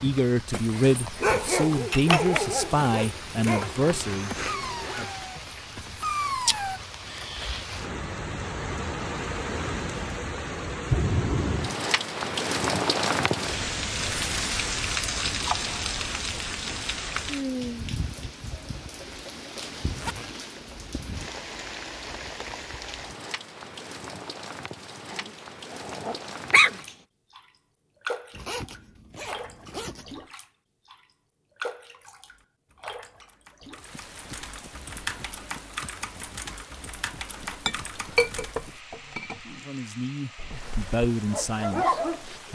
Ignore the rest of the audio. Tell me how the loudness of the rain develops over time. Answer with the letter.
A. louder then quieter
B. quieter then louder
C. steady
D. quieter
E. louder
A.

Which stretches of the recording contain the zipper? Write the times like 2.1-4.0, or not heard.
3.5-5.2, 19.6-20.4, 28.3-30.1.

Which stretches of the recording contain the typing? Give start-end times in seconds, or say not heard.
32.1-38.6.